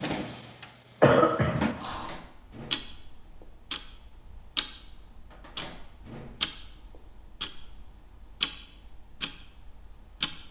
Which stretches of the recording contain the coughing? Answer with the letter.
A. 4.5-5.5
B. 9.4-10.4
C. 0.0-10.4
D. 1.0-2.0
D.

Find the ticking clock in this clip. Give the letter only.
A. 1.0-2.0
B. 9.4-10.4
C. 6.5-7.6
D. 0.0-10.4
D.